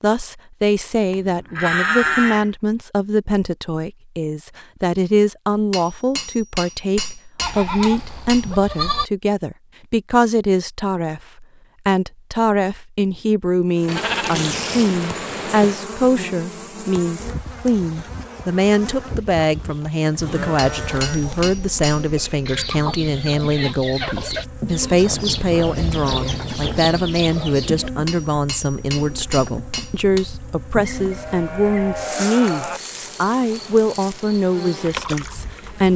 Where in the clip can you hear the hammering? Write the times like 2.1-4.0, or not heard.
5.7-8.5, 20.6-22.1, 28.1-30.2.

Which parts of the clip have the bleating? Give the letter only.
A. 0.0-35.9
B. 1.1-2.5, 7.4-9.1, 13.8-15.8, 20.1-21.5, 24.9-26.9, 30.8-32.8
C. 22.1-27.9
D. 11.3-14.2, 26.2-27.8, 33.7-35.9
B.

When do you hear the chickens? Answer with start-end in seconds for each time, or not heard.
22.1-27.9.